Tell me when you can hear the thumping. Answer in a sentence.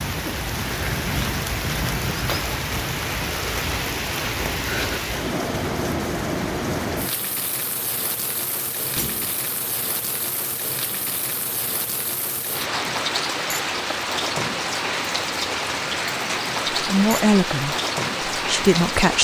The thumping can be heard from 8.9 to 9.3 s.